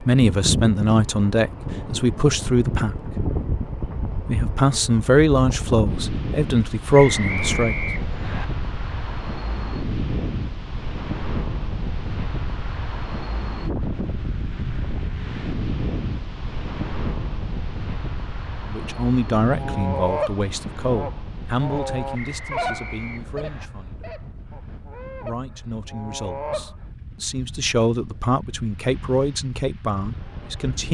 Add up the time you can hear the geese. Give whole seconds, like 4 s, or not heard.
7 s.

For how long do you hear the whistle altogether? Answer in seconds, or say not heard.
3 s.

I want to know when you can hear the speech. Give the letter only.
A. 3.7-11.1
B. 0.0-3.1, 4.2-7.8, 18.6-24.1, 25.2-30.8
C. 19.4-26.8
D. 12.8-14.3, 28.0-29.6
B.